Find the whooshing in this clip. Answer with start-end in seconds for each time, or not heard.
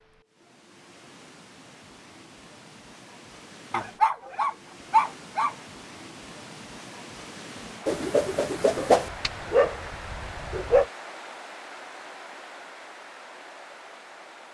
7.8-9.1.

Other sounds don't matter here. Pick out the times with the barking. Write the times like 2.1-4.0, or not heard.
3.7-5.5, 8.8-10.8.